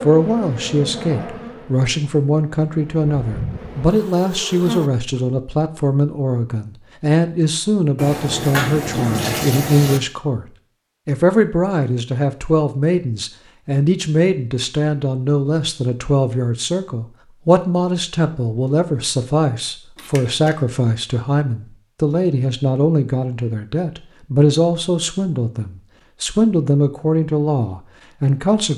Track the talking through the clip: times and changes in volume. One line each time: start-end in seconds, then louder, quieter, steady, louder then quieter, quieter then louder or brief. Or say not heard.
0.0-10.4 steady
11.1-28.7 steady.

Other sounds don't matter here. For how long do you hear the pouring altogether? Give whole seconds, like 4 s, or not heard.
3 s.